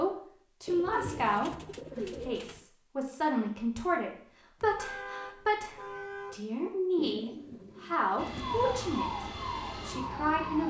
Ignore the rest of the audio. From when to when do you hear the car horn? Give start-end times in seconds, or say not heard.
4.6-6.5.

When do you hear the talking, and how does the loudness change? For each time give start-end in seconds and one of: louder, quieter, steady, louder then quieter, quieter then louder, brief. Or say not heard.
0.0-9.2 steady
9.8-10.6 brief.